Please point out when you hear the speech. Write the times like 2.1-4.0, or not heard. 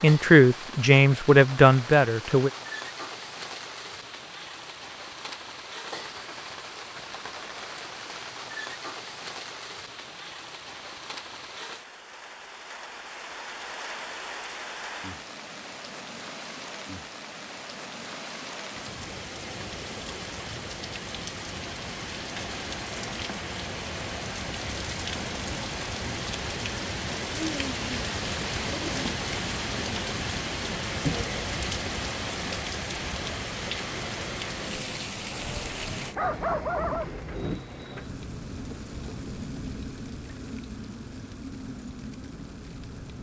0.0-2.5.